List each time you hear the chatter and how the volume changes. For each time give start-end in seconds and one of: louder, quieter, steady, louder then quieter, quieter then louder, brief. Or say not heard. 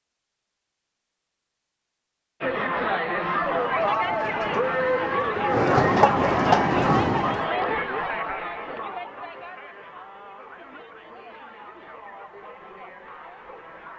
2.4-13.9 quieter.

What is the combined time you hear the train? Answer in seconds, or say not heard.
4 s.